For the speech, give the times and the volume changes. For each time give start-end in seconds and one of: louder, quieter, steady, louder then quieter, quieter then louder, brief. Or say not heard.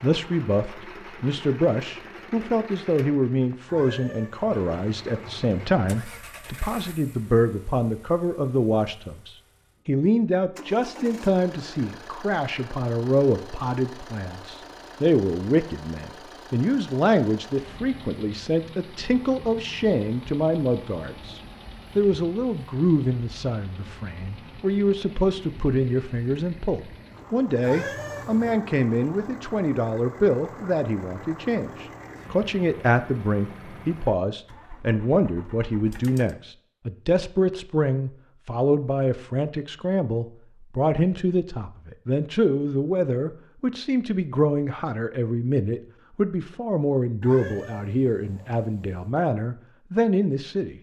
0.0-50.7 steady.